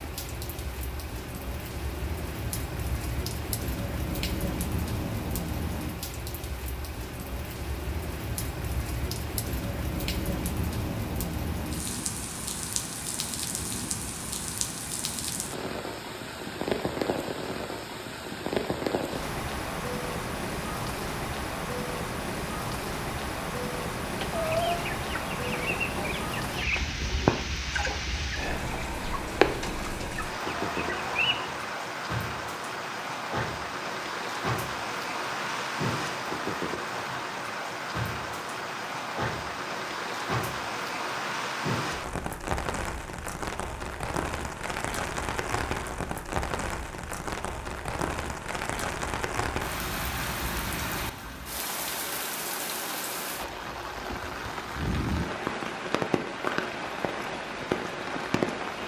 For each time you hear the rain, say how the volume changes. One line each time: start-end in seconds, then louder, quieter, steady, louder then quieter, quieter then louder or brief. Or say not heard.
0.0-58.8 steady.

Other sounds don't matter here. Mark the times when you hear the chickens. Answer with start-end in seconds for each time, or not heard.
24.1-31.6.